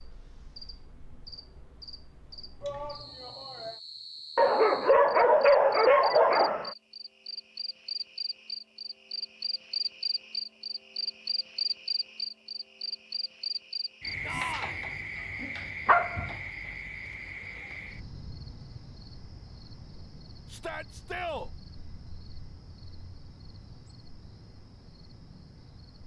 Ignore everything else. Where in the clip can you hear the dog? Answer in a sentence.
The dog can be heard from 4.3 to 6.8 s and from 15.8 to 16.3 s.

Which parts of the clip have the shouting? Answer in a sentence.
You can hear the shouting from 2.6 to 3.8 s, from 14.2 to 14.8 s and from 20.5 to 21.5 s.